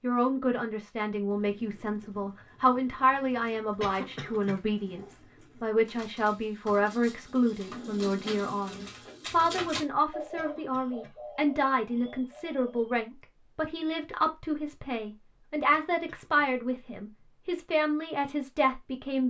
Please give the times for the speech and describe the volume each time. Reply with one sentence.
The speech can be heard from 0.0 to 19.2 s, at a steady volume.